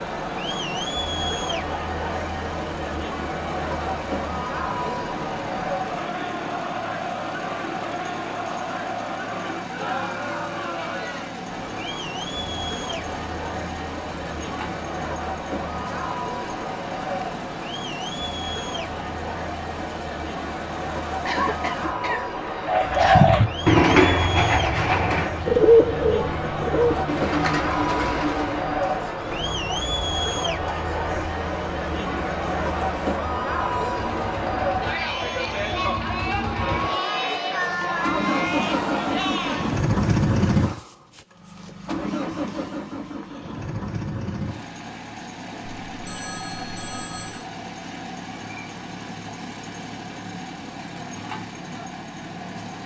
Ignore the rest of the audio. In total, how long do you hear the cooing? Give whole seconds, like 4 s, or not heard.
6 s.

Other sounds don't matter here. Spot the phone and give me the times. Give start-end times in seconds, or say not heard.
45.9-47.5.